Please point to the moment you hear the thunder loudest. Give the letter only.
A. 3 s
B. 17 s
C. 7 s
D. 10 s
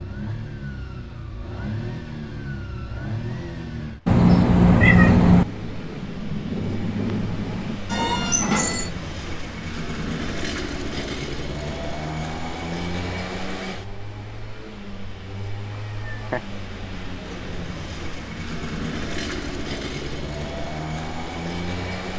C.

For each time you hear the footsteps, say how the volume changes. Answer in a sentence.
You can't hear the footsteps here.